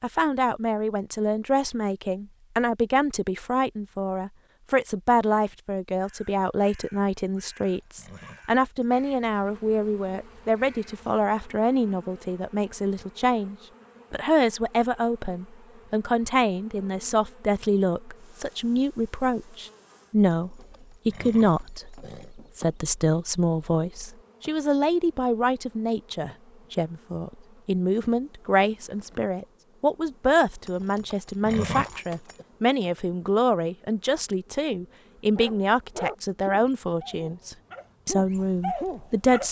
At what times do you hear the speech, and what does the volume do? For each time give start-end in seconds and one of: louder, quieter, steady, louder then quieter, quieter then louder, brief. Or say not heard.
0.0-39.4 steady.